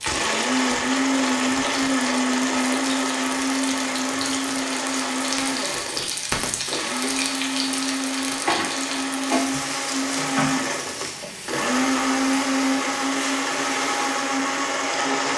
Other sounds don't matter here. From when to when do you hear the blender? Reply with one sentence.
You can hear the blender from 0.1 to 15.3 s.